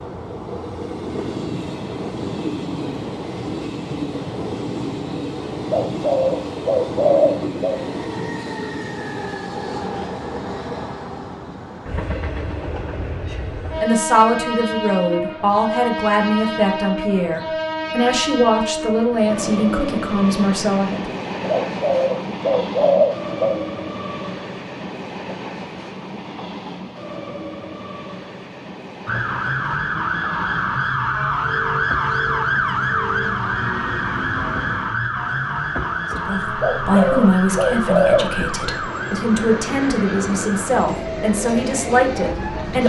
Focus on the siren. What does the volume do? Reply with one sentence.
The loudness of the siren goes down.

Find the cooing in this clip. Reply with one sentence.
The cooing can be heard from 5.7 to 7.8 s, from 21.4 to 23.6 s and from 36.6 to 38.2 s.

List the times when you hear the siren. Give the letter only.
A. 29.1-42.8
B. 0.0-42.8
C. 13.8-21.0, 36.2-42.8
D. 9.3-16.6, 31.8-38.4
A.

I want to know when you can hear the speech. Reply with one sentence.
The speech can be heard from 13.8 to 21.0 s and from 36.2 to 42.8 s.